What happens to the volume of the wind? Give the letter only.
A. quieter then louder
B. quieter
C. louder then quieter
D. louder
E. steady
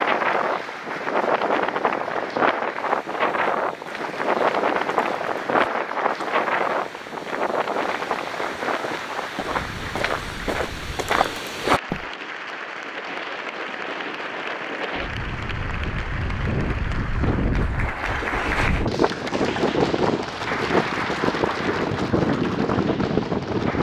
A.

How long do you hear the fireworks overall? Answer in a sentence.
The fireworks can't be heard in this clip.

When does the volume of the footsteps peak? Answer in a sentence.
The volume of the footsteps peaks at 12 seconds.